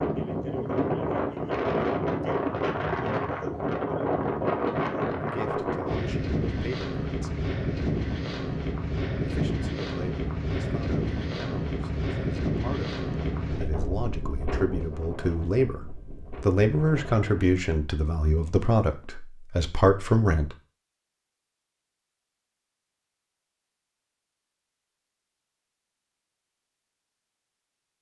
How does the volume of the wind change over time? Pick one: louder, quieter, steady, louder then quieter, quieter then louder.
quieter.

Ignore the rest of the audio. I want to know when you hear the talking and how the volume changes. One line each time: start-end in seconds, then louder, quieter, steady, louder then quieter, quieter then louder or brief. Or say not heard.
5.2-7.5 brief
9.2-20.6 louder.